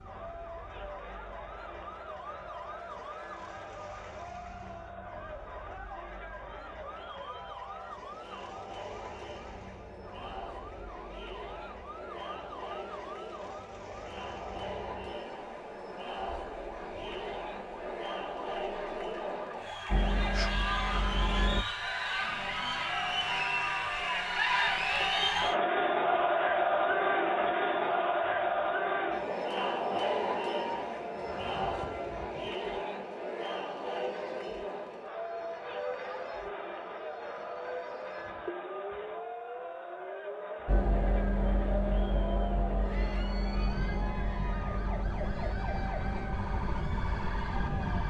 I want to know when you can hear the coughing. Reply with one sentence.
You can't hear the coughing here.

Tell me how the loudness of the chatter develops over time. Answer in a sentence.
The volume of the chatter goes up, then down.